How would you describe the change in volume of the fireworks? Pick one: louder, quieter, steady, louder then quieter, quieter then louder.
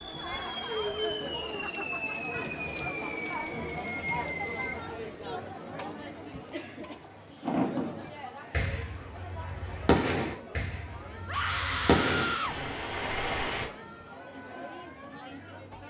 louder.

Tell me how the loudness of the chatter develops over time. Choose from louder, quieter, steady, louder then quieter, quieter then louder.
quieter.